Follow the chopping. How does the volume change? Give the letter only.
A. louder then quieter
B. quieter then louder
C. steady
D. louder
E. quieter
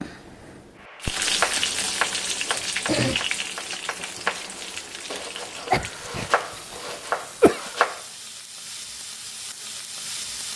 B.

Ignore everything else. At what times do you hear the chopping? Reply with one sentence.
You can hear the chopping from 0.8 to 8.1 s.